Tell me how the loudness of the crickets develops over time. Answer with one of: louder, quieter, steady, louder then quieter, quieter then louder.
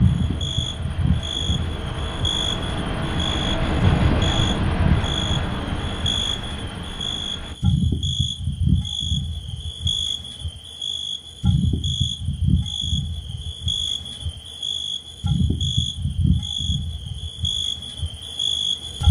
steady.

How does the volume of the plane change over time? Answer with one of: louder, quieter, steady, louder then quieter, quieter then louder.
louder then quieter.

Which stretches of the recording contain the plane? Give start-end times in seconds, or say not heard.
0.0-7.5.